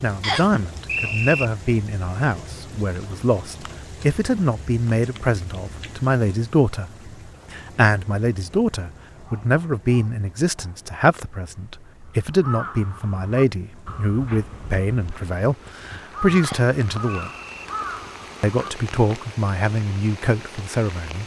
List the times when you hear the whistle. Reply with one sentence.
You can hear the whistle from 0.2 to 1.4 s and from 16.4 to 17.6 s.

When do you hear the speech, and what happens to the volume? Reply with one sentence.
The speech can be heard from 0.0 to 17.3 s, at a steady volume; and briefly from 18.4 to 21.2 s.